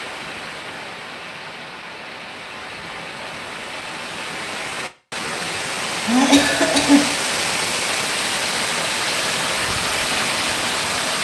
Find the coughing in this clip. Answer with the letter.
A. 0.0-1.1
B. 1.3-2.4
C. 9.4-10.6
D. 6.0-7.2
D.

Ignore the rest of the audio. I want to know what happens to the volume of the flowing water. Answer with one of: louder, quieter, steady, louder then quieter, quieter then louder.
louder.